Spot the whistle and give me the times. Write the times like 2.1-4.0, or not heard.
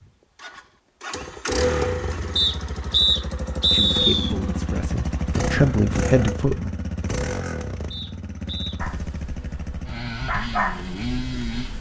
2.4-4.3, 7.9-8.8.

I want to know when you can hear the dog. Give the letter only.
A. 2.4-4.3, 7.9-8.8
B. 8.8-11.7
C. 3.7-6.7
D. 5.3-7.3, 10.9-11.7
B.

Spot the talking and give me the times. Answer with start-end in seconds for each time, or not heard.
3.7-6.7.